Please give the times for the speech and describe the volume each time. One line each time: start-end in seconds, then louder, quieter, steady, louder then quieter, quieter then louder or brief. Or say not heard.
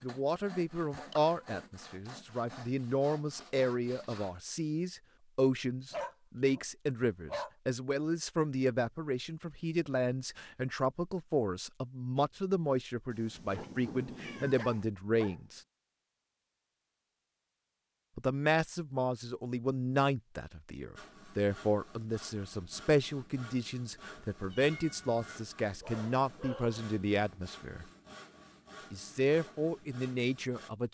0.0-15.6 steady
18.1-27.9 steady
28.9-30.8 brief.